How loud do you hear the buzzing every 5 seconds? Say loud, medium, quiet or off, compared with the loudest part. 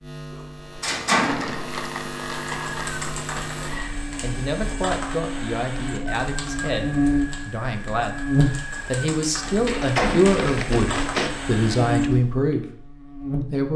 medium, loud, loud.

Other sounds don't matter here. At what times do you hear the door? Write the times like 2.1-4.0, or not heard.
0.3-1.6, 9.7-10.3.